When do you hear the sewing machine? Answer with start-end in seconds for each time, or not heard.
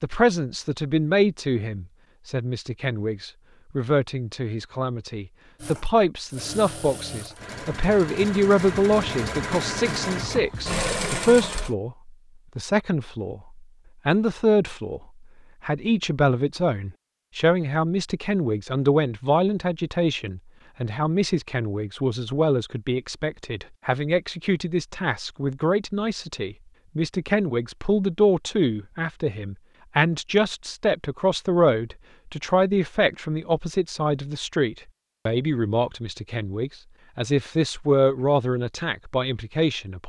5.5-11.8.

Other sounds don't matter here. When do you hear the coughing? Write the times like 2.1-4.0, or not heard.
not heard.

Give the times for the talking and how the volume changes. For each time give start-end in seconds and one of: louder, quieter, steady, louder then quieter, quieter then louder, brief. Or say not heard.
0.0-15.0 steady
15.6-40.0 steady.